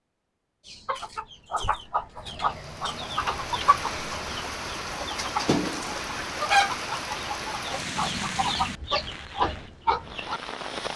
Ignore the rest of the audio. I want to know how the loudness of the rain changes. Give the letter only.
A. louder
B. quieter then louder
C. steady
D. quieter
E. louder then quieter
D.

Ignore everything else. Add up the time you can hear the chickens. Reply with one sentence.
You can hear the chickens for 10 seconds altogether.